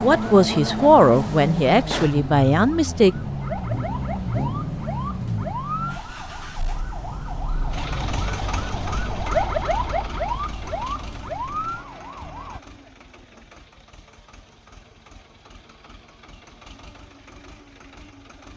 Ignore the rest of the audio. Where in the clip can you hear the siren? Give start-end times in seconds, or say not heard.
0.0-12.6.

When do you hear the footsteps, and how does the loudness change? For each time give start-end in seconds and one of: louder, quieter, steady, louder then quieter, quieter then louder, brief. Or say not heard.
not heard.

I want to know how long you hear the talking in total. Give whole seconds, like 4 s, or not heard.
3 s.